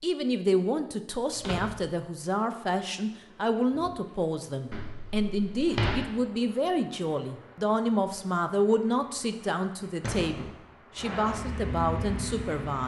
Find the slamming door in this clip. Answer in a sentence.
The slamming door can be heard from 1.3 to 1.9 s, from 4.7 to 6.0 s and from 10.0 to 10.6 s.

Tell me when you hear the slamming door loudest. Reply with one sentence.
The loudest moment of the slamming door is at 6 seconds.